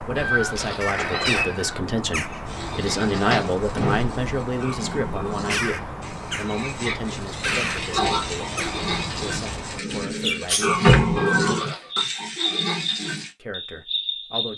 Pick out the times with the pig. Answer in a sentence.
The pig can be heard from 2.5 to 13.3 s.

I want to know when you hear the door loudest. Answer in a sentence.
The volume of the door peaks at 11 seconds.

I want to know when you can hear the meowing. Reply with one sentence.
You can hear the meowing from 0.1 to 1.8 s and from 11.2 to 11.9 s.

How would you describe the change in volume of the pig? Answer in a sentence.
The loudness of the pig goes up.